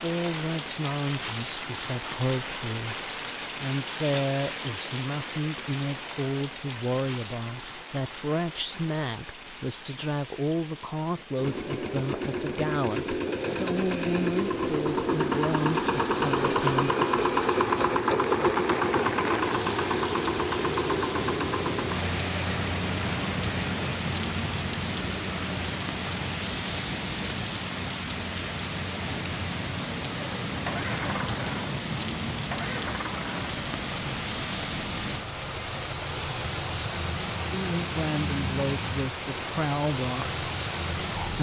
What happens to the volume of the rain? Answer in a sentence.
The volume of the rain goes down, then up.